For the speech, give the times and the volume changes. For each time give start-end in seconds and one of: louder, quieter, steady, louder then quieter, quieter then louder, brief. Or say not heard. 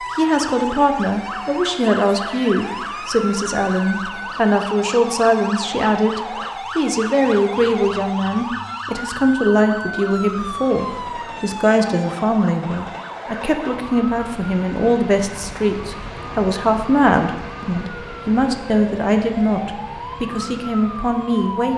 0.1-21.7 steady.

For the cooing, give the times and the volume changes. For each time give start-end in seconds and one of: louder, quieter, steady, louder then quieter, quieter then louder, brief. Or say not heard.
not heard.